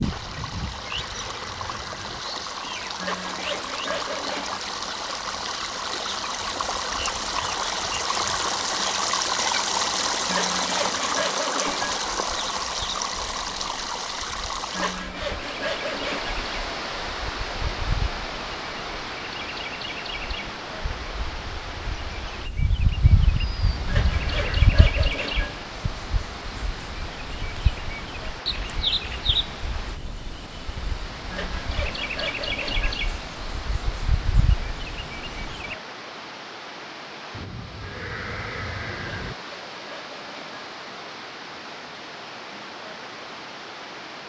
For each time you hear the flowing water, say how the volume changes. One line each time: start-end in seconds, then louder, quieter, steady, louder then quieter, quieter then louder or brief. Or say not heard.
0.0-44.2 quieter.